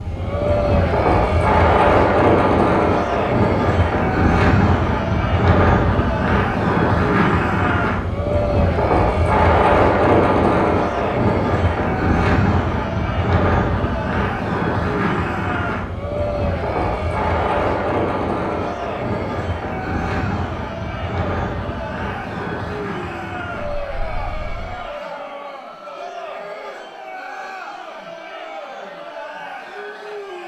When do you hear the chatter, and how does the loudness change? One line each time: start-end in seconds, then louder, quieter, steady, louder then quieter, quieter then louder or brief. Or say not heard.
0.0-30.4 quieter.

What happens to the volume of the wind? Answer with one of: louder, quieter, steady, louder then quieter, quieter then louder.
quieter.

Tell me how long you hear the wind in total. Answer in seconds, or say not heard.
25 s.